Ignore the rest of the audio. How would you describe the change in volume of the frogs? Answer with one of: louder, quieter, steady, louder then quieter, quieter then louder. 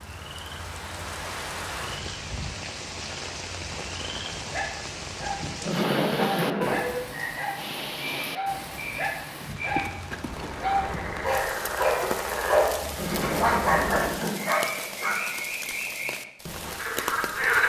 louder.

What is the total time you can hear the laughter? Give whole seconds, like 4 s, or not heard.
3 s.